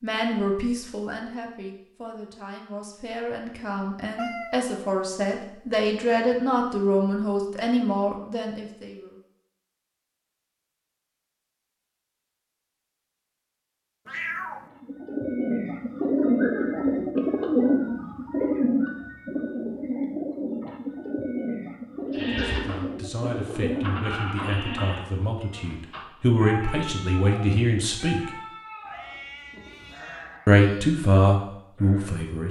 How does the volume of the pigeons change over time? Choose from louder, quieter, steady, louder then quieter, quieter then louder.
quieter.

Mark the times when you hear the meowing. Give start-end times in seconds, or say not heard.
4.2-4.7, 14.1-14.7, 28.9-30.4.